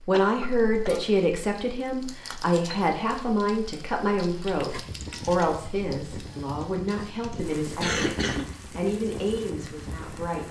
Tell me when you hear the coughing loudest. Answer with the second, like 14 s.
8 s.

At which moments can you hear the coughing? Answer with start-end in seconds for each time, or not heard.
0.1-1.0, 6.8-8.5.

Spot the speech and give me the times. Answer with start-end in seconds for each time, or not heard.
0.1-10.4.